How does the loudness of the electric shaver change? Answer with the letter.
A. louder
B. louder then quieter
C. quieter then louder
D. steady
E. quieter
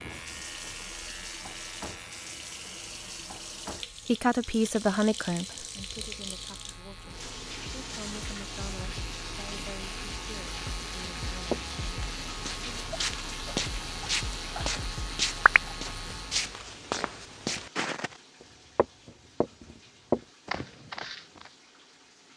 C.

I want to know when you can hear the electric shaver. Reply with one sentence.
The electric shaver can be heard from 0.0 to 16.6 s.